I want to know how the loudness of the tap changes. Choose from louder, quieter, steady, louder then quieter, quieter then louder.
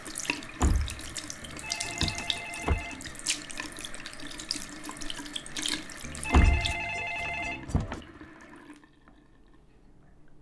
quieter.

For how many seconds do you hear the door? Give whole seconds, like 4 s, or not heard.
4 s.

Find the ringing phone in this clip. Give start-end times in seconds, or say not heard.
1.4-3.2, 6.0-8.1.